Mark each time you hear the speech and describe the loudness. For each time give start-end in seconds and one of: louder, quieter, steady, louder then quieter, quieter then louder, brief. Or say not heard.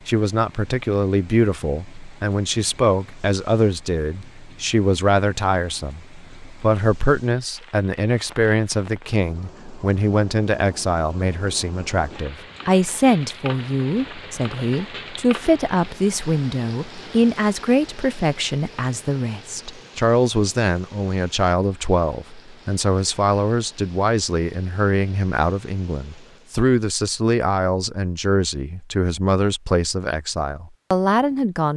0.1-31.7 steady.